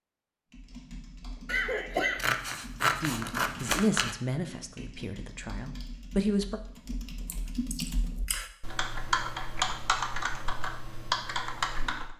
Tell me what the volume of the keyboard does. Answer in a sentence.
The loudness of the keyboard goes up.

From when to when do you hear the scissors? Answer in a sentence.
The scissors can be heard from 2.1 to 4.2 s.